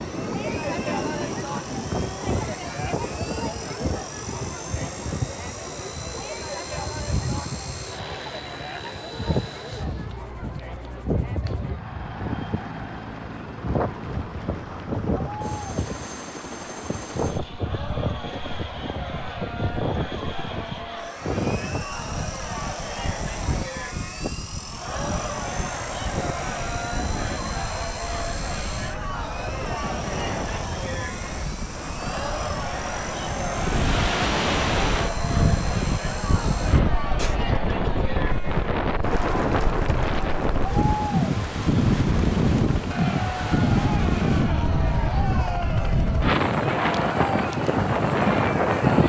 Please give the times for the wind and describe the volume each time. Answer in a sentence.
You can hear the wind from 0.0 to 49.0 s, getting louder.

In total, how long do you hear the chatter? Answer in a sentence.
The chatter can be heard for 49 seconds in total.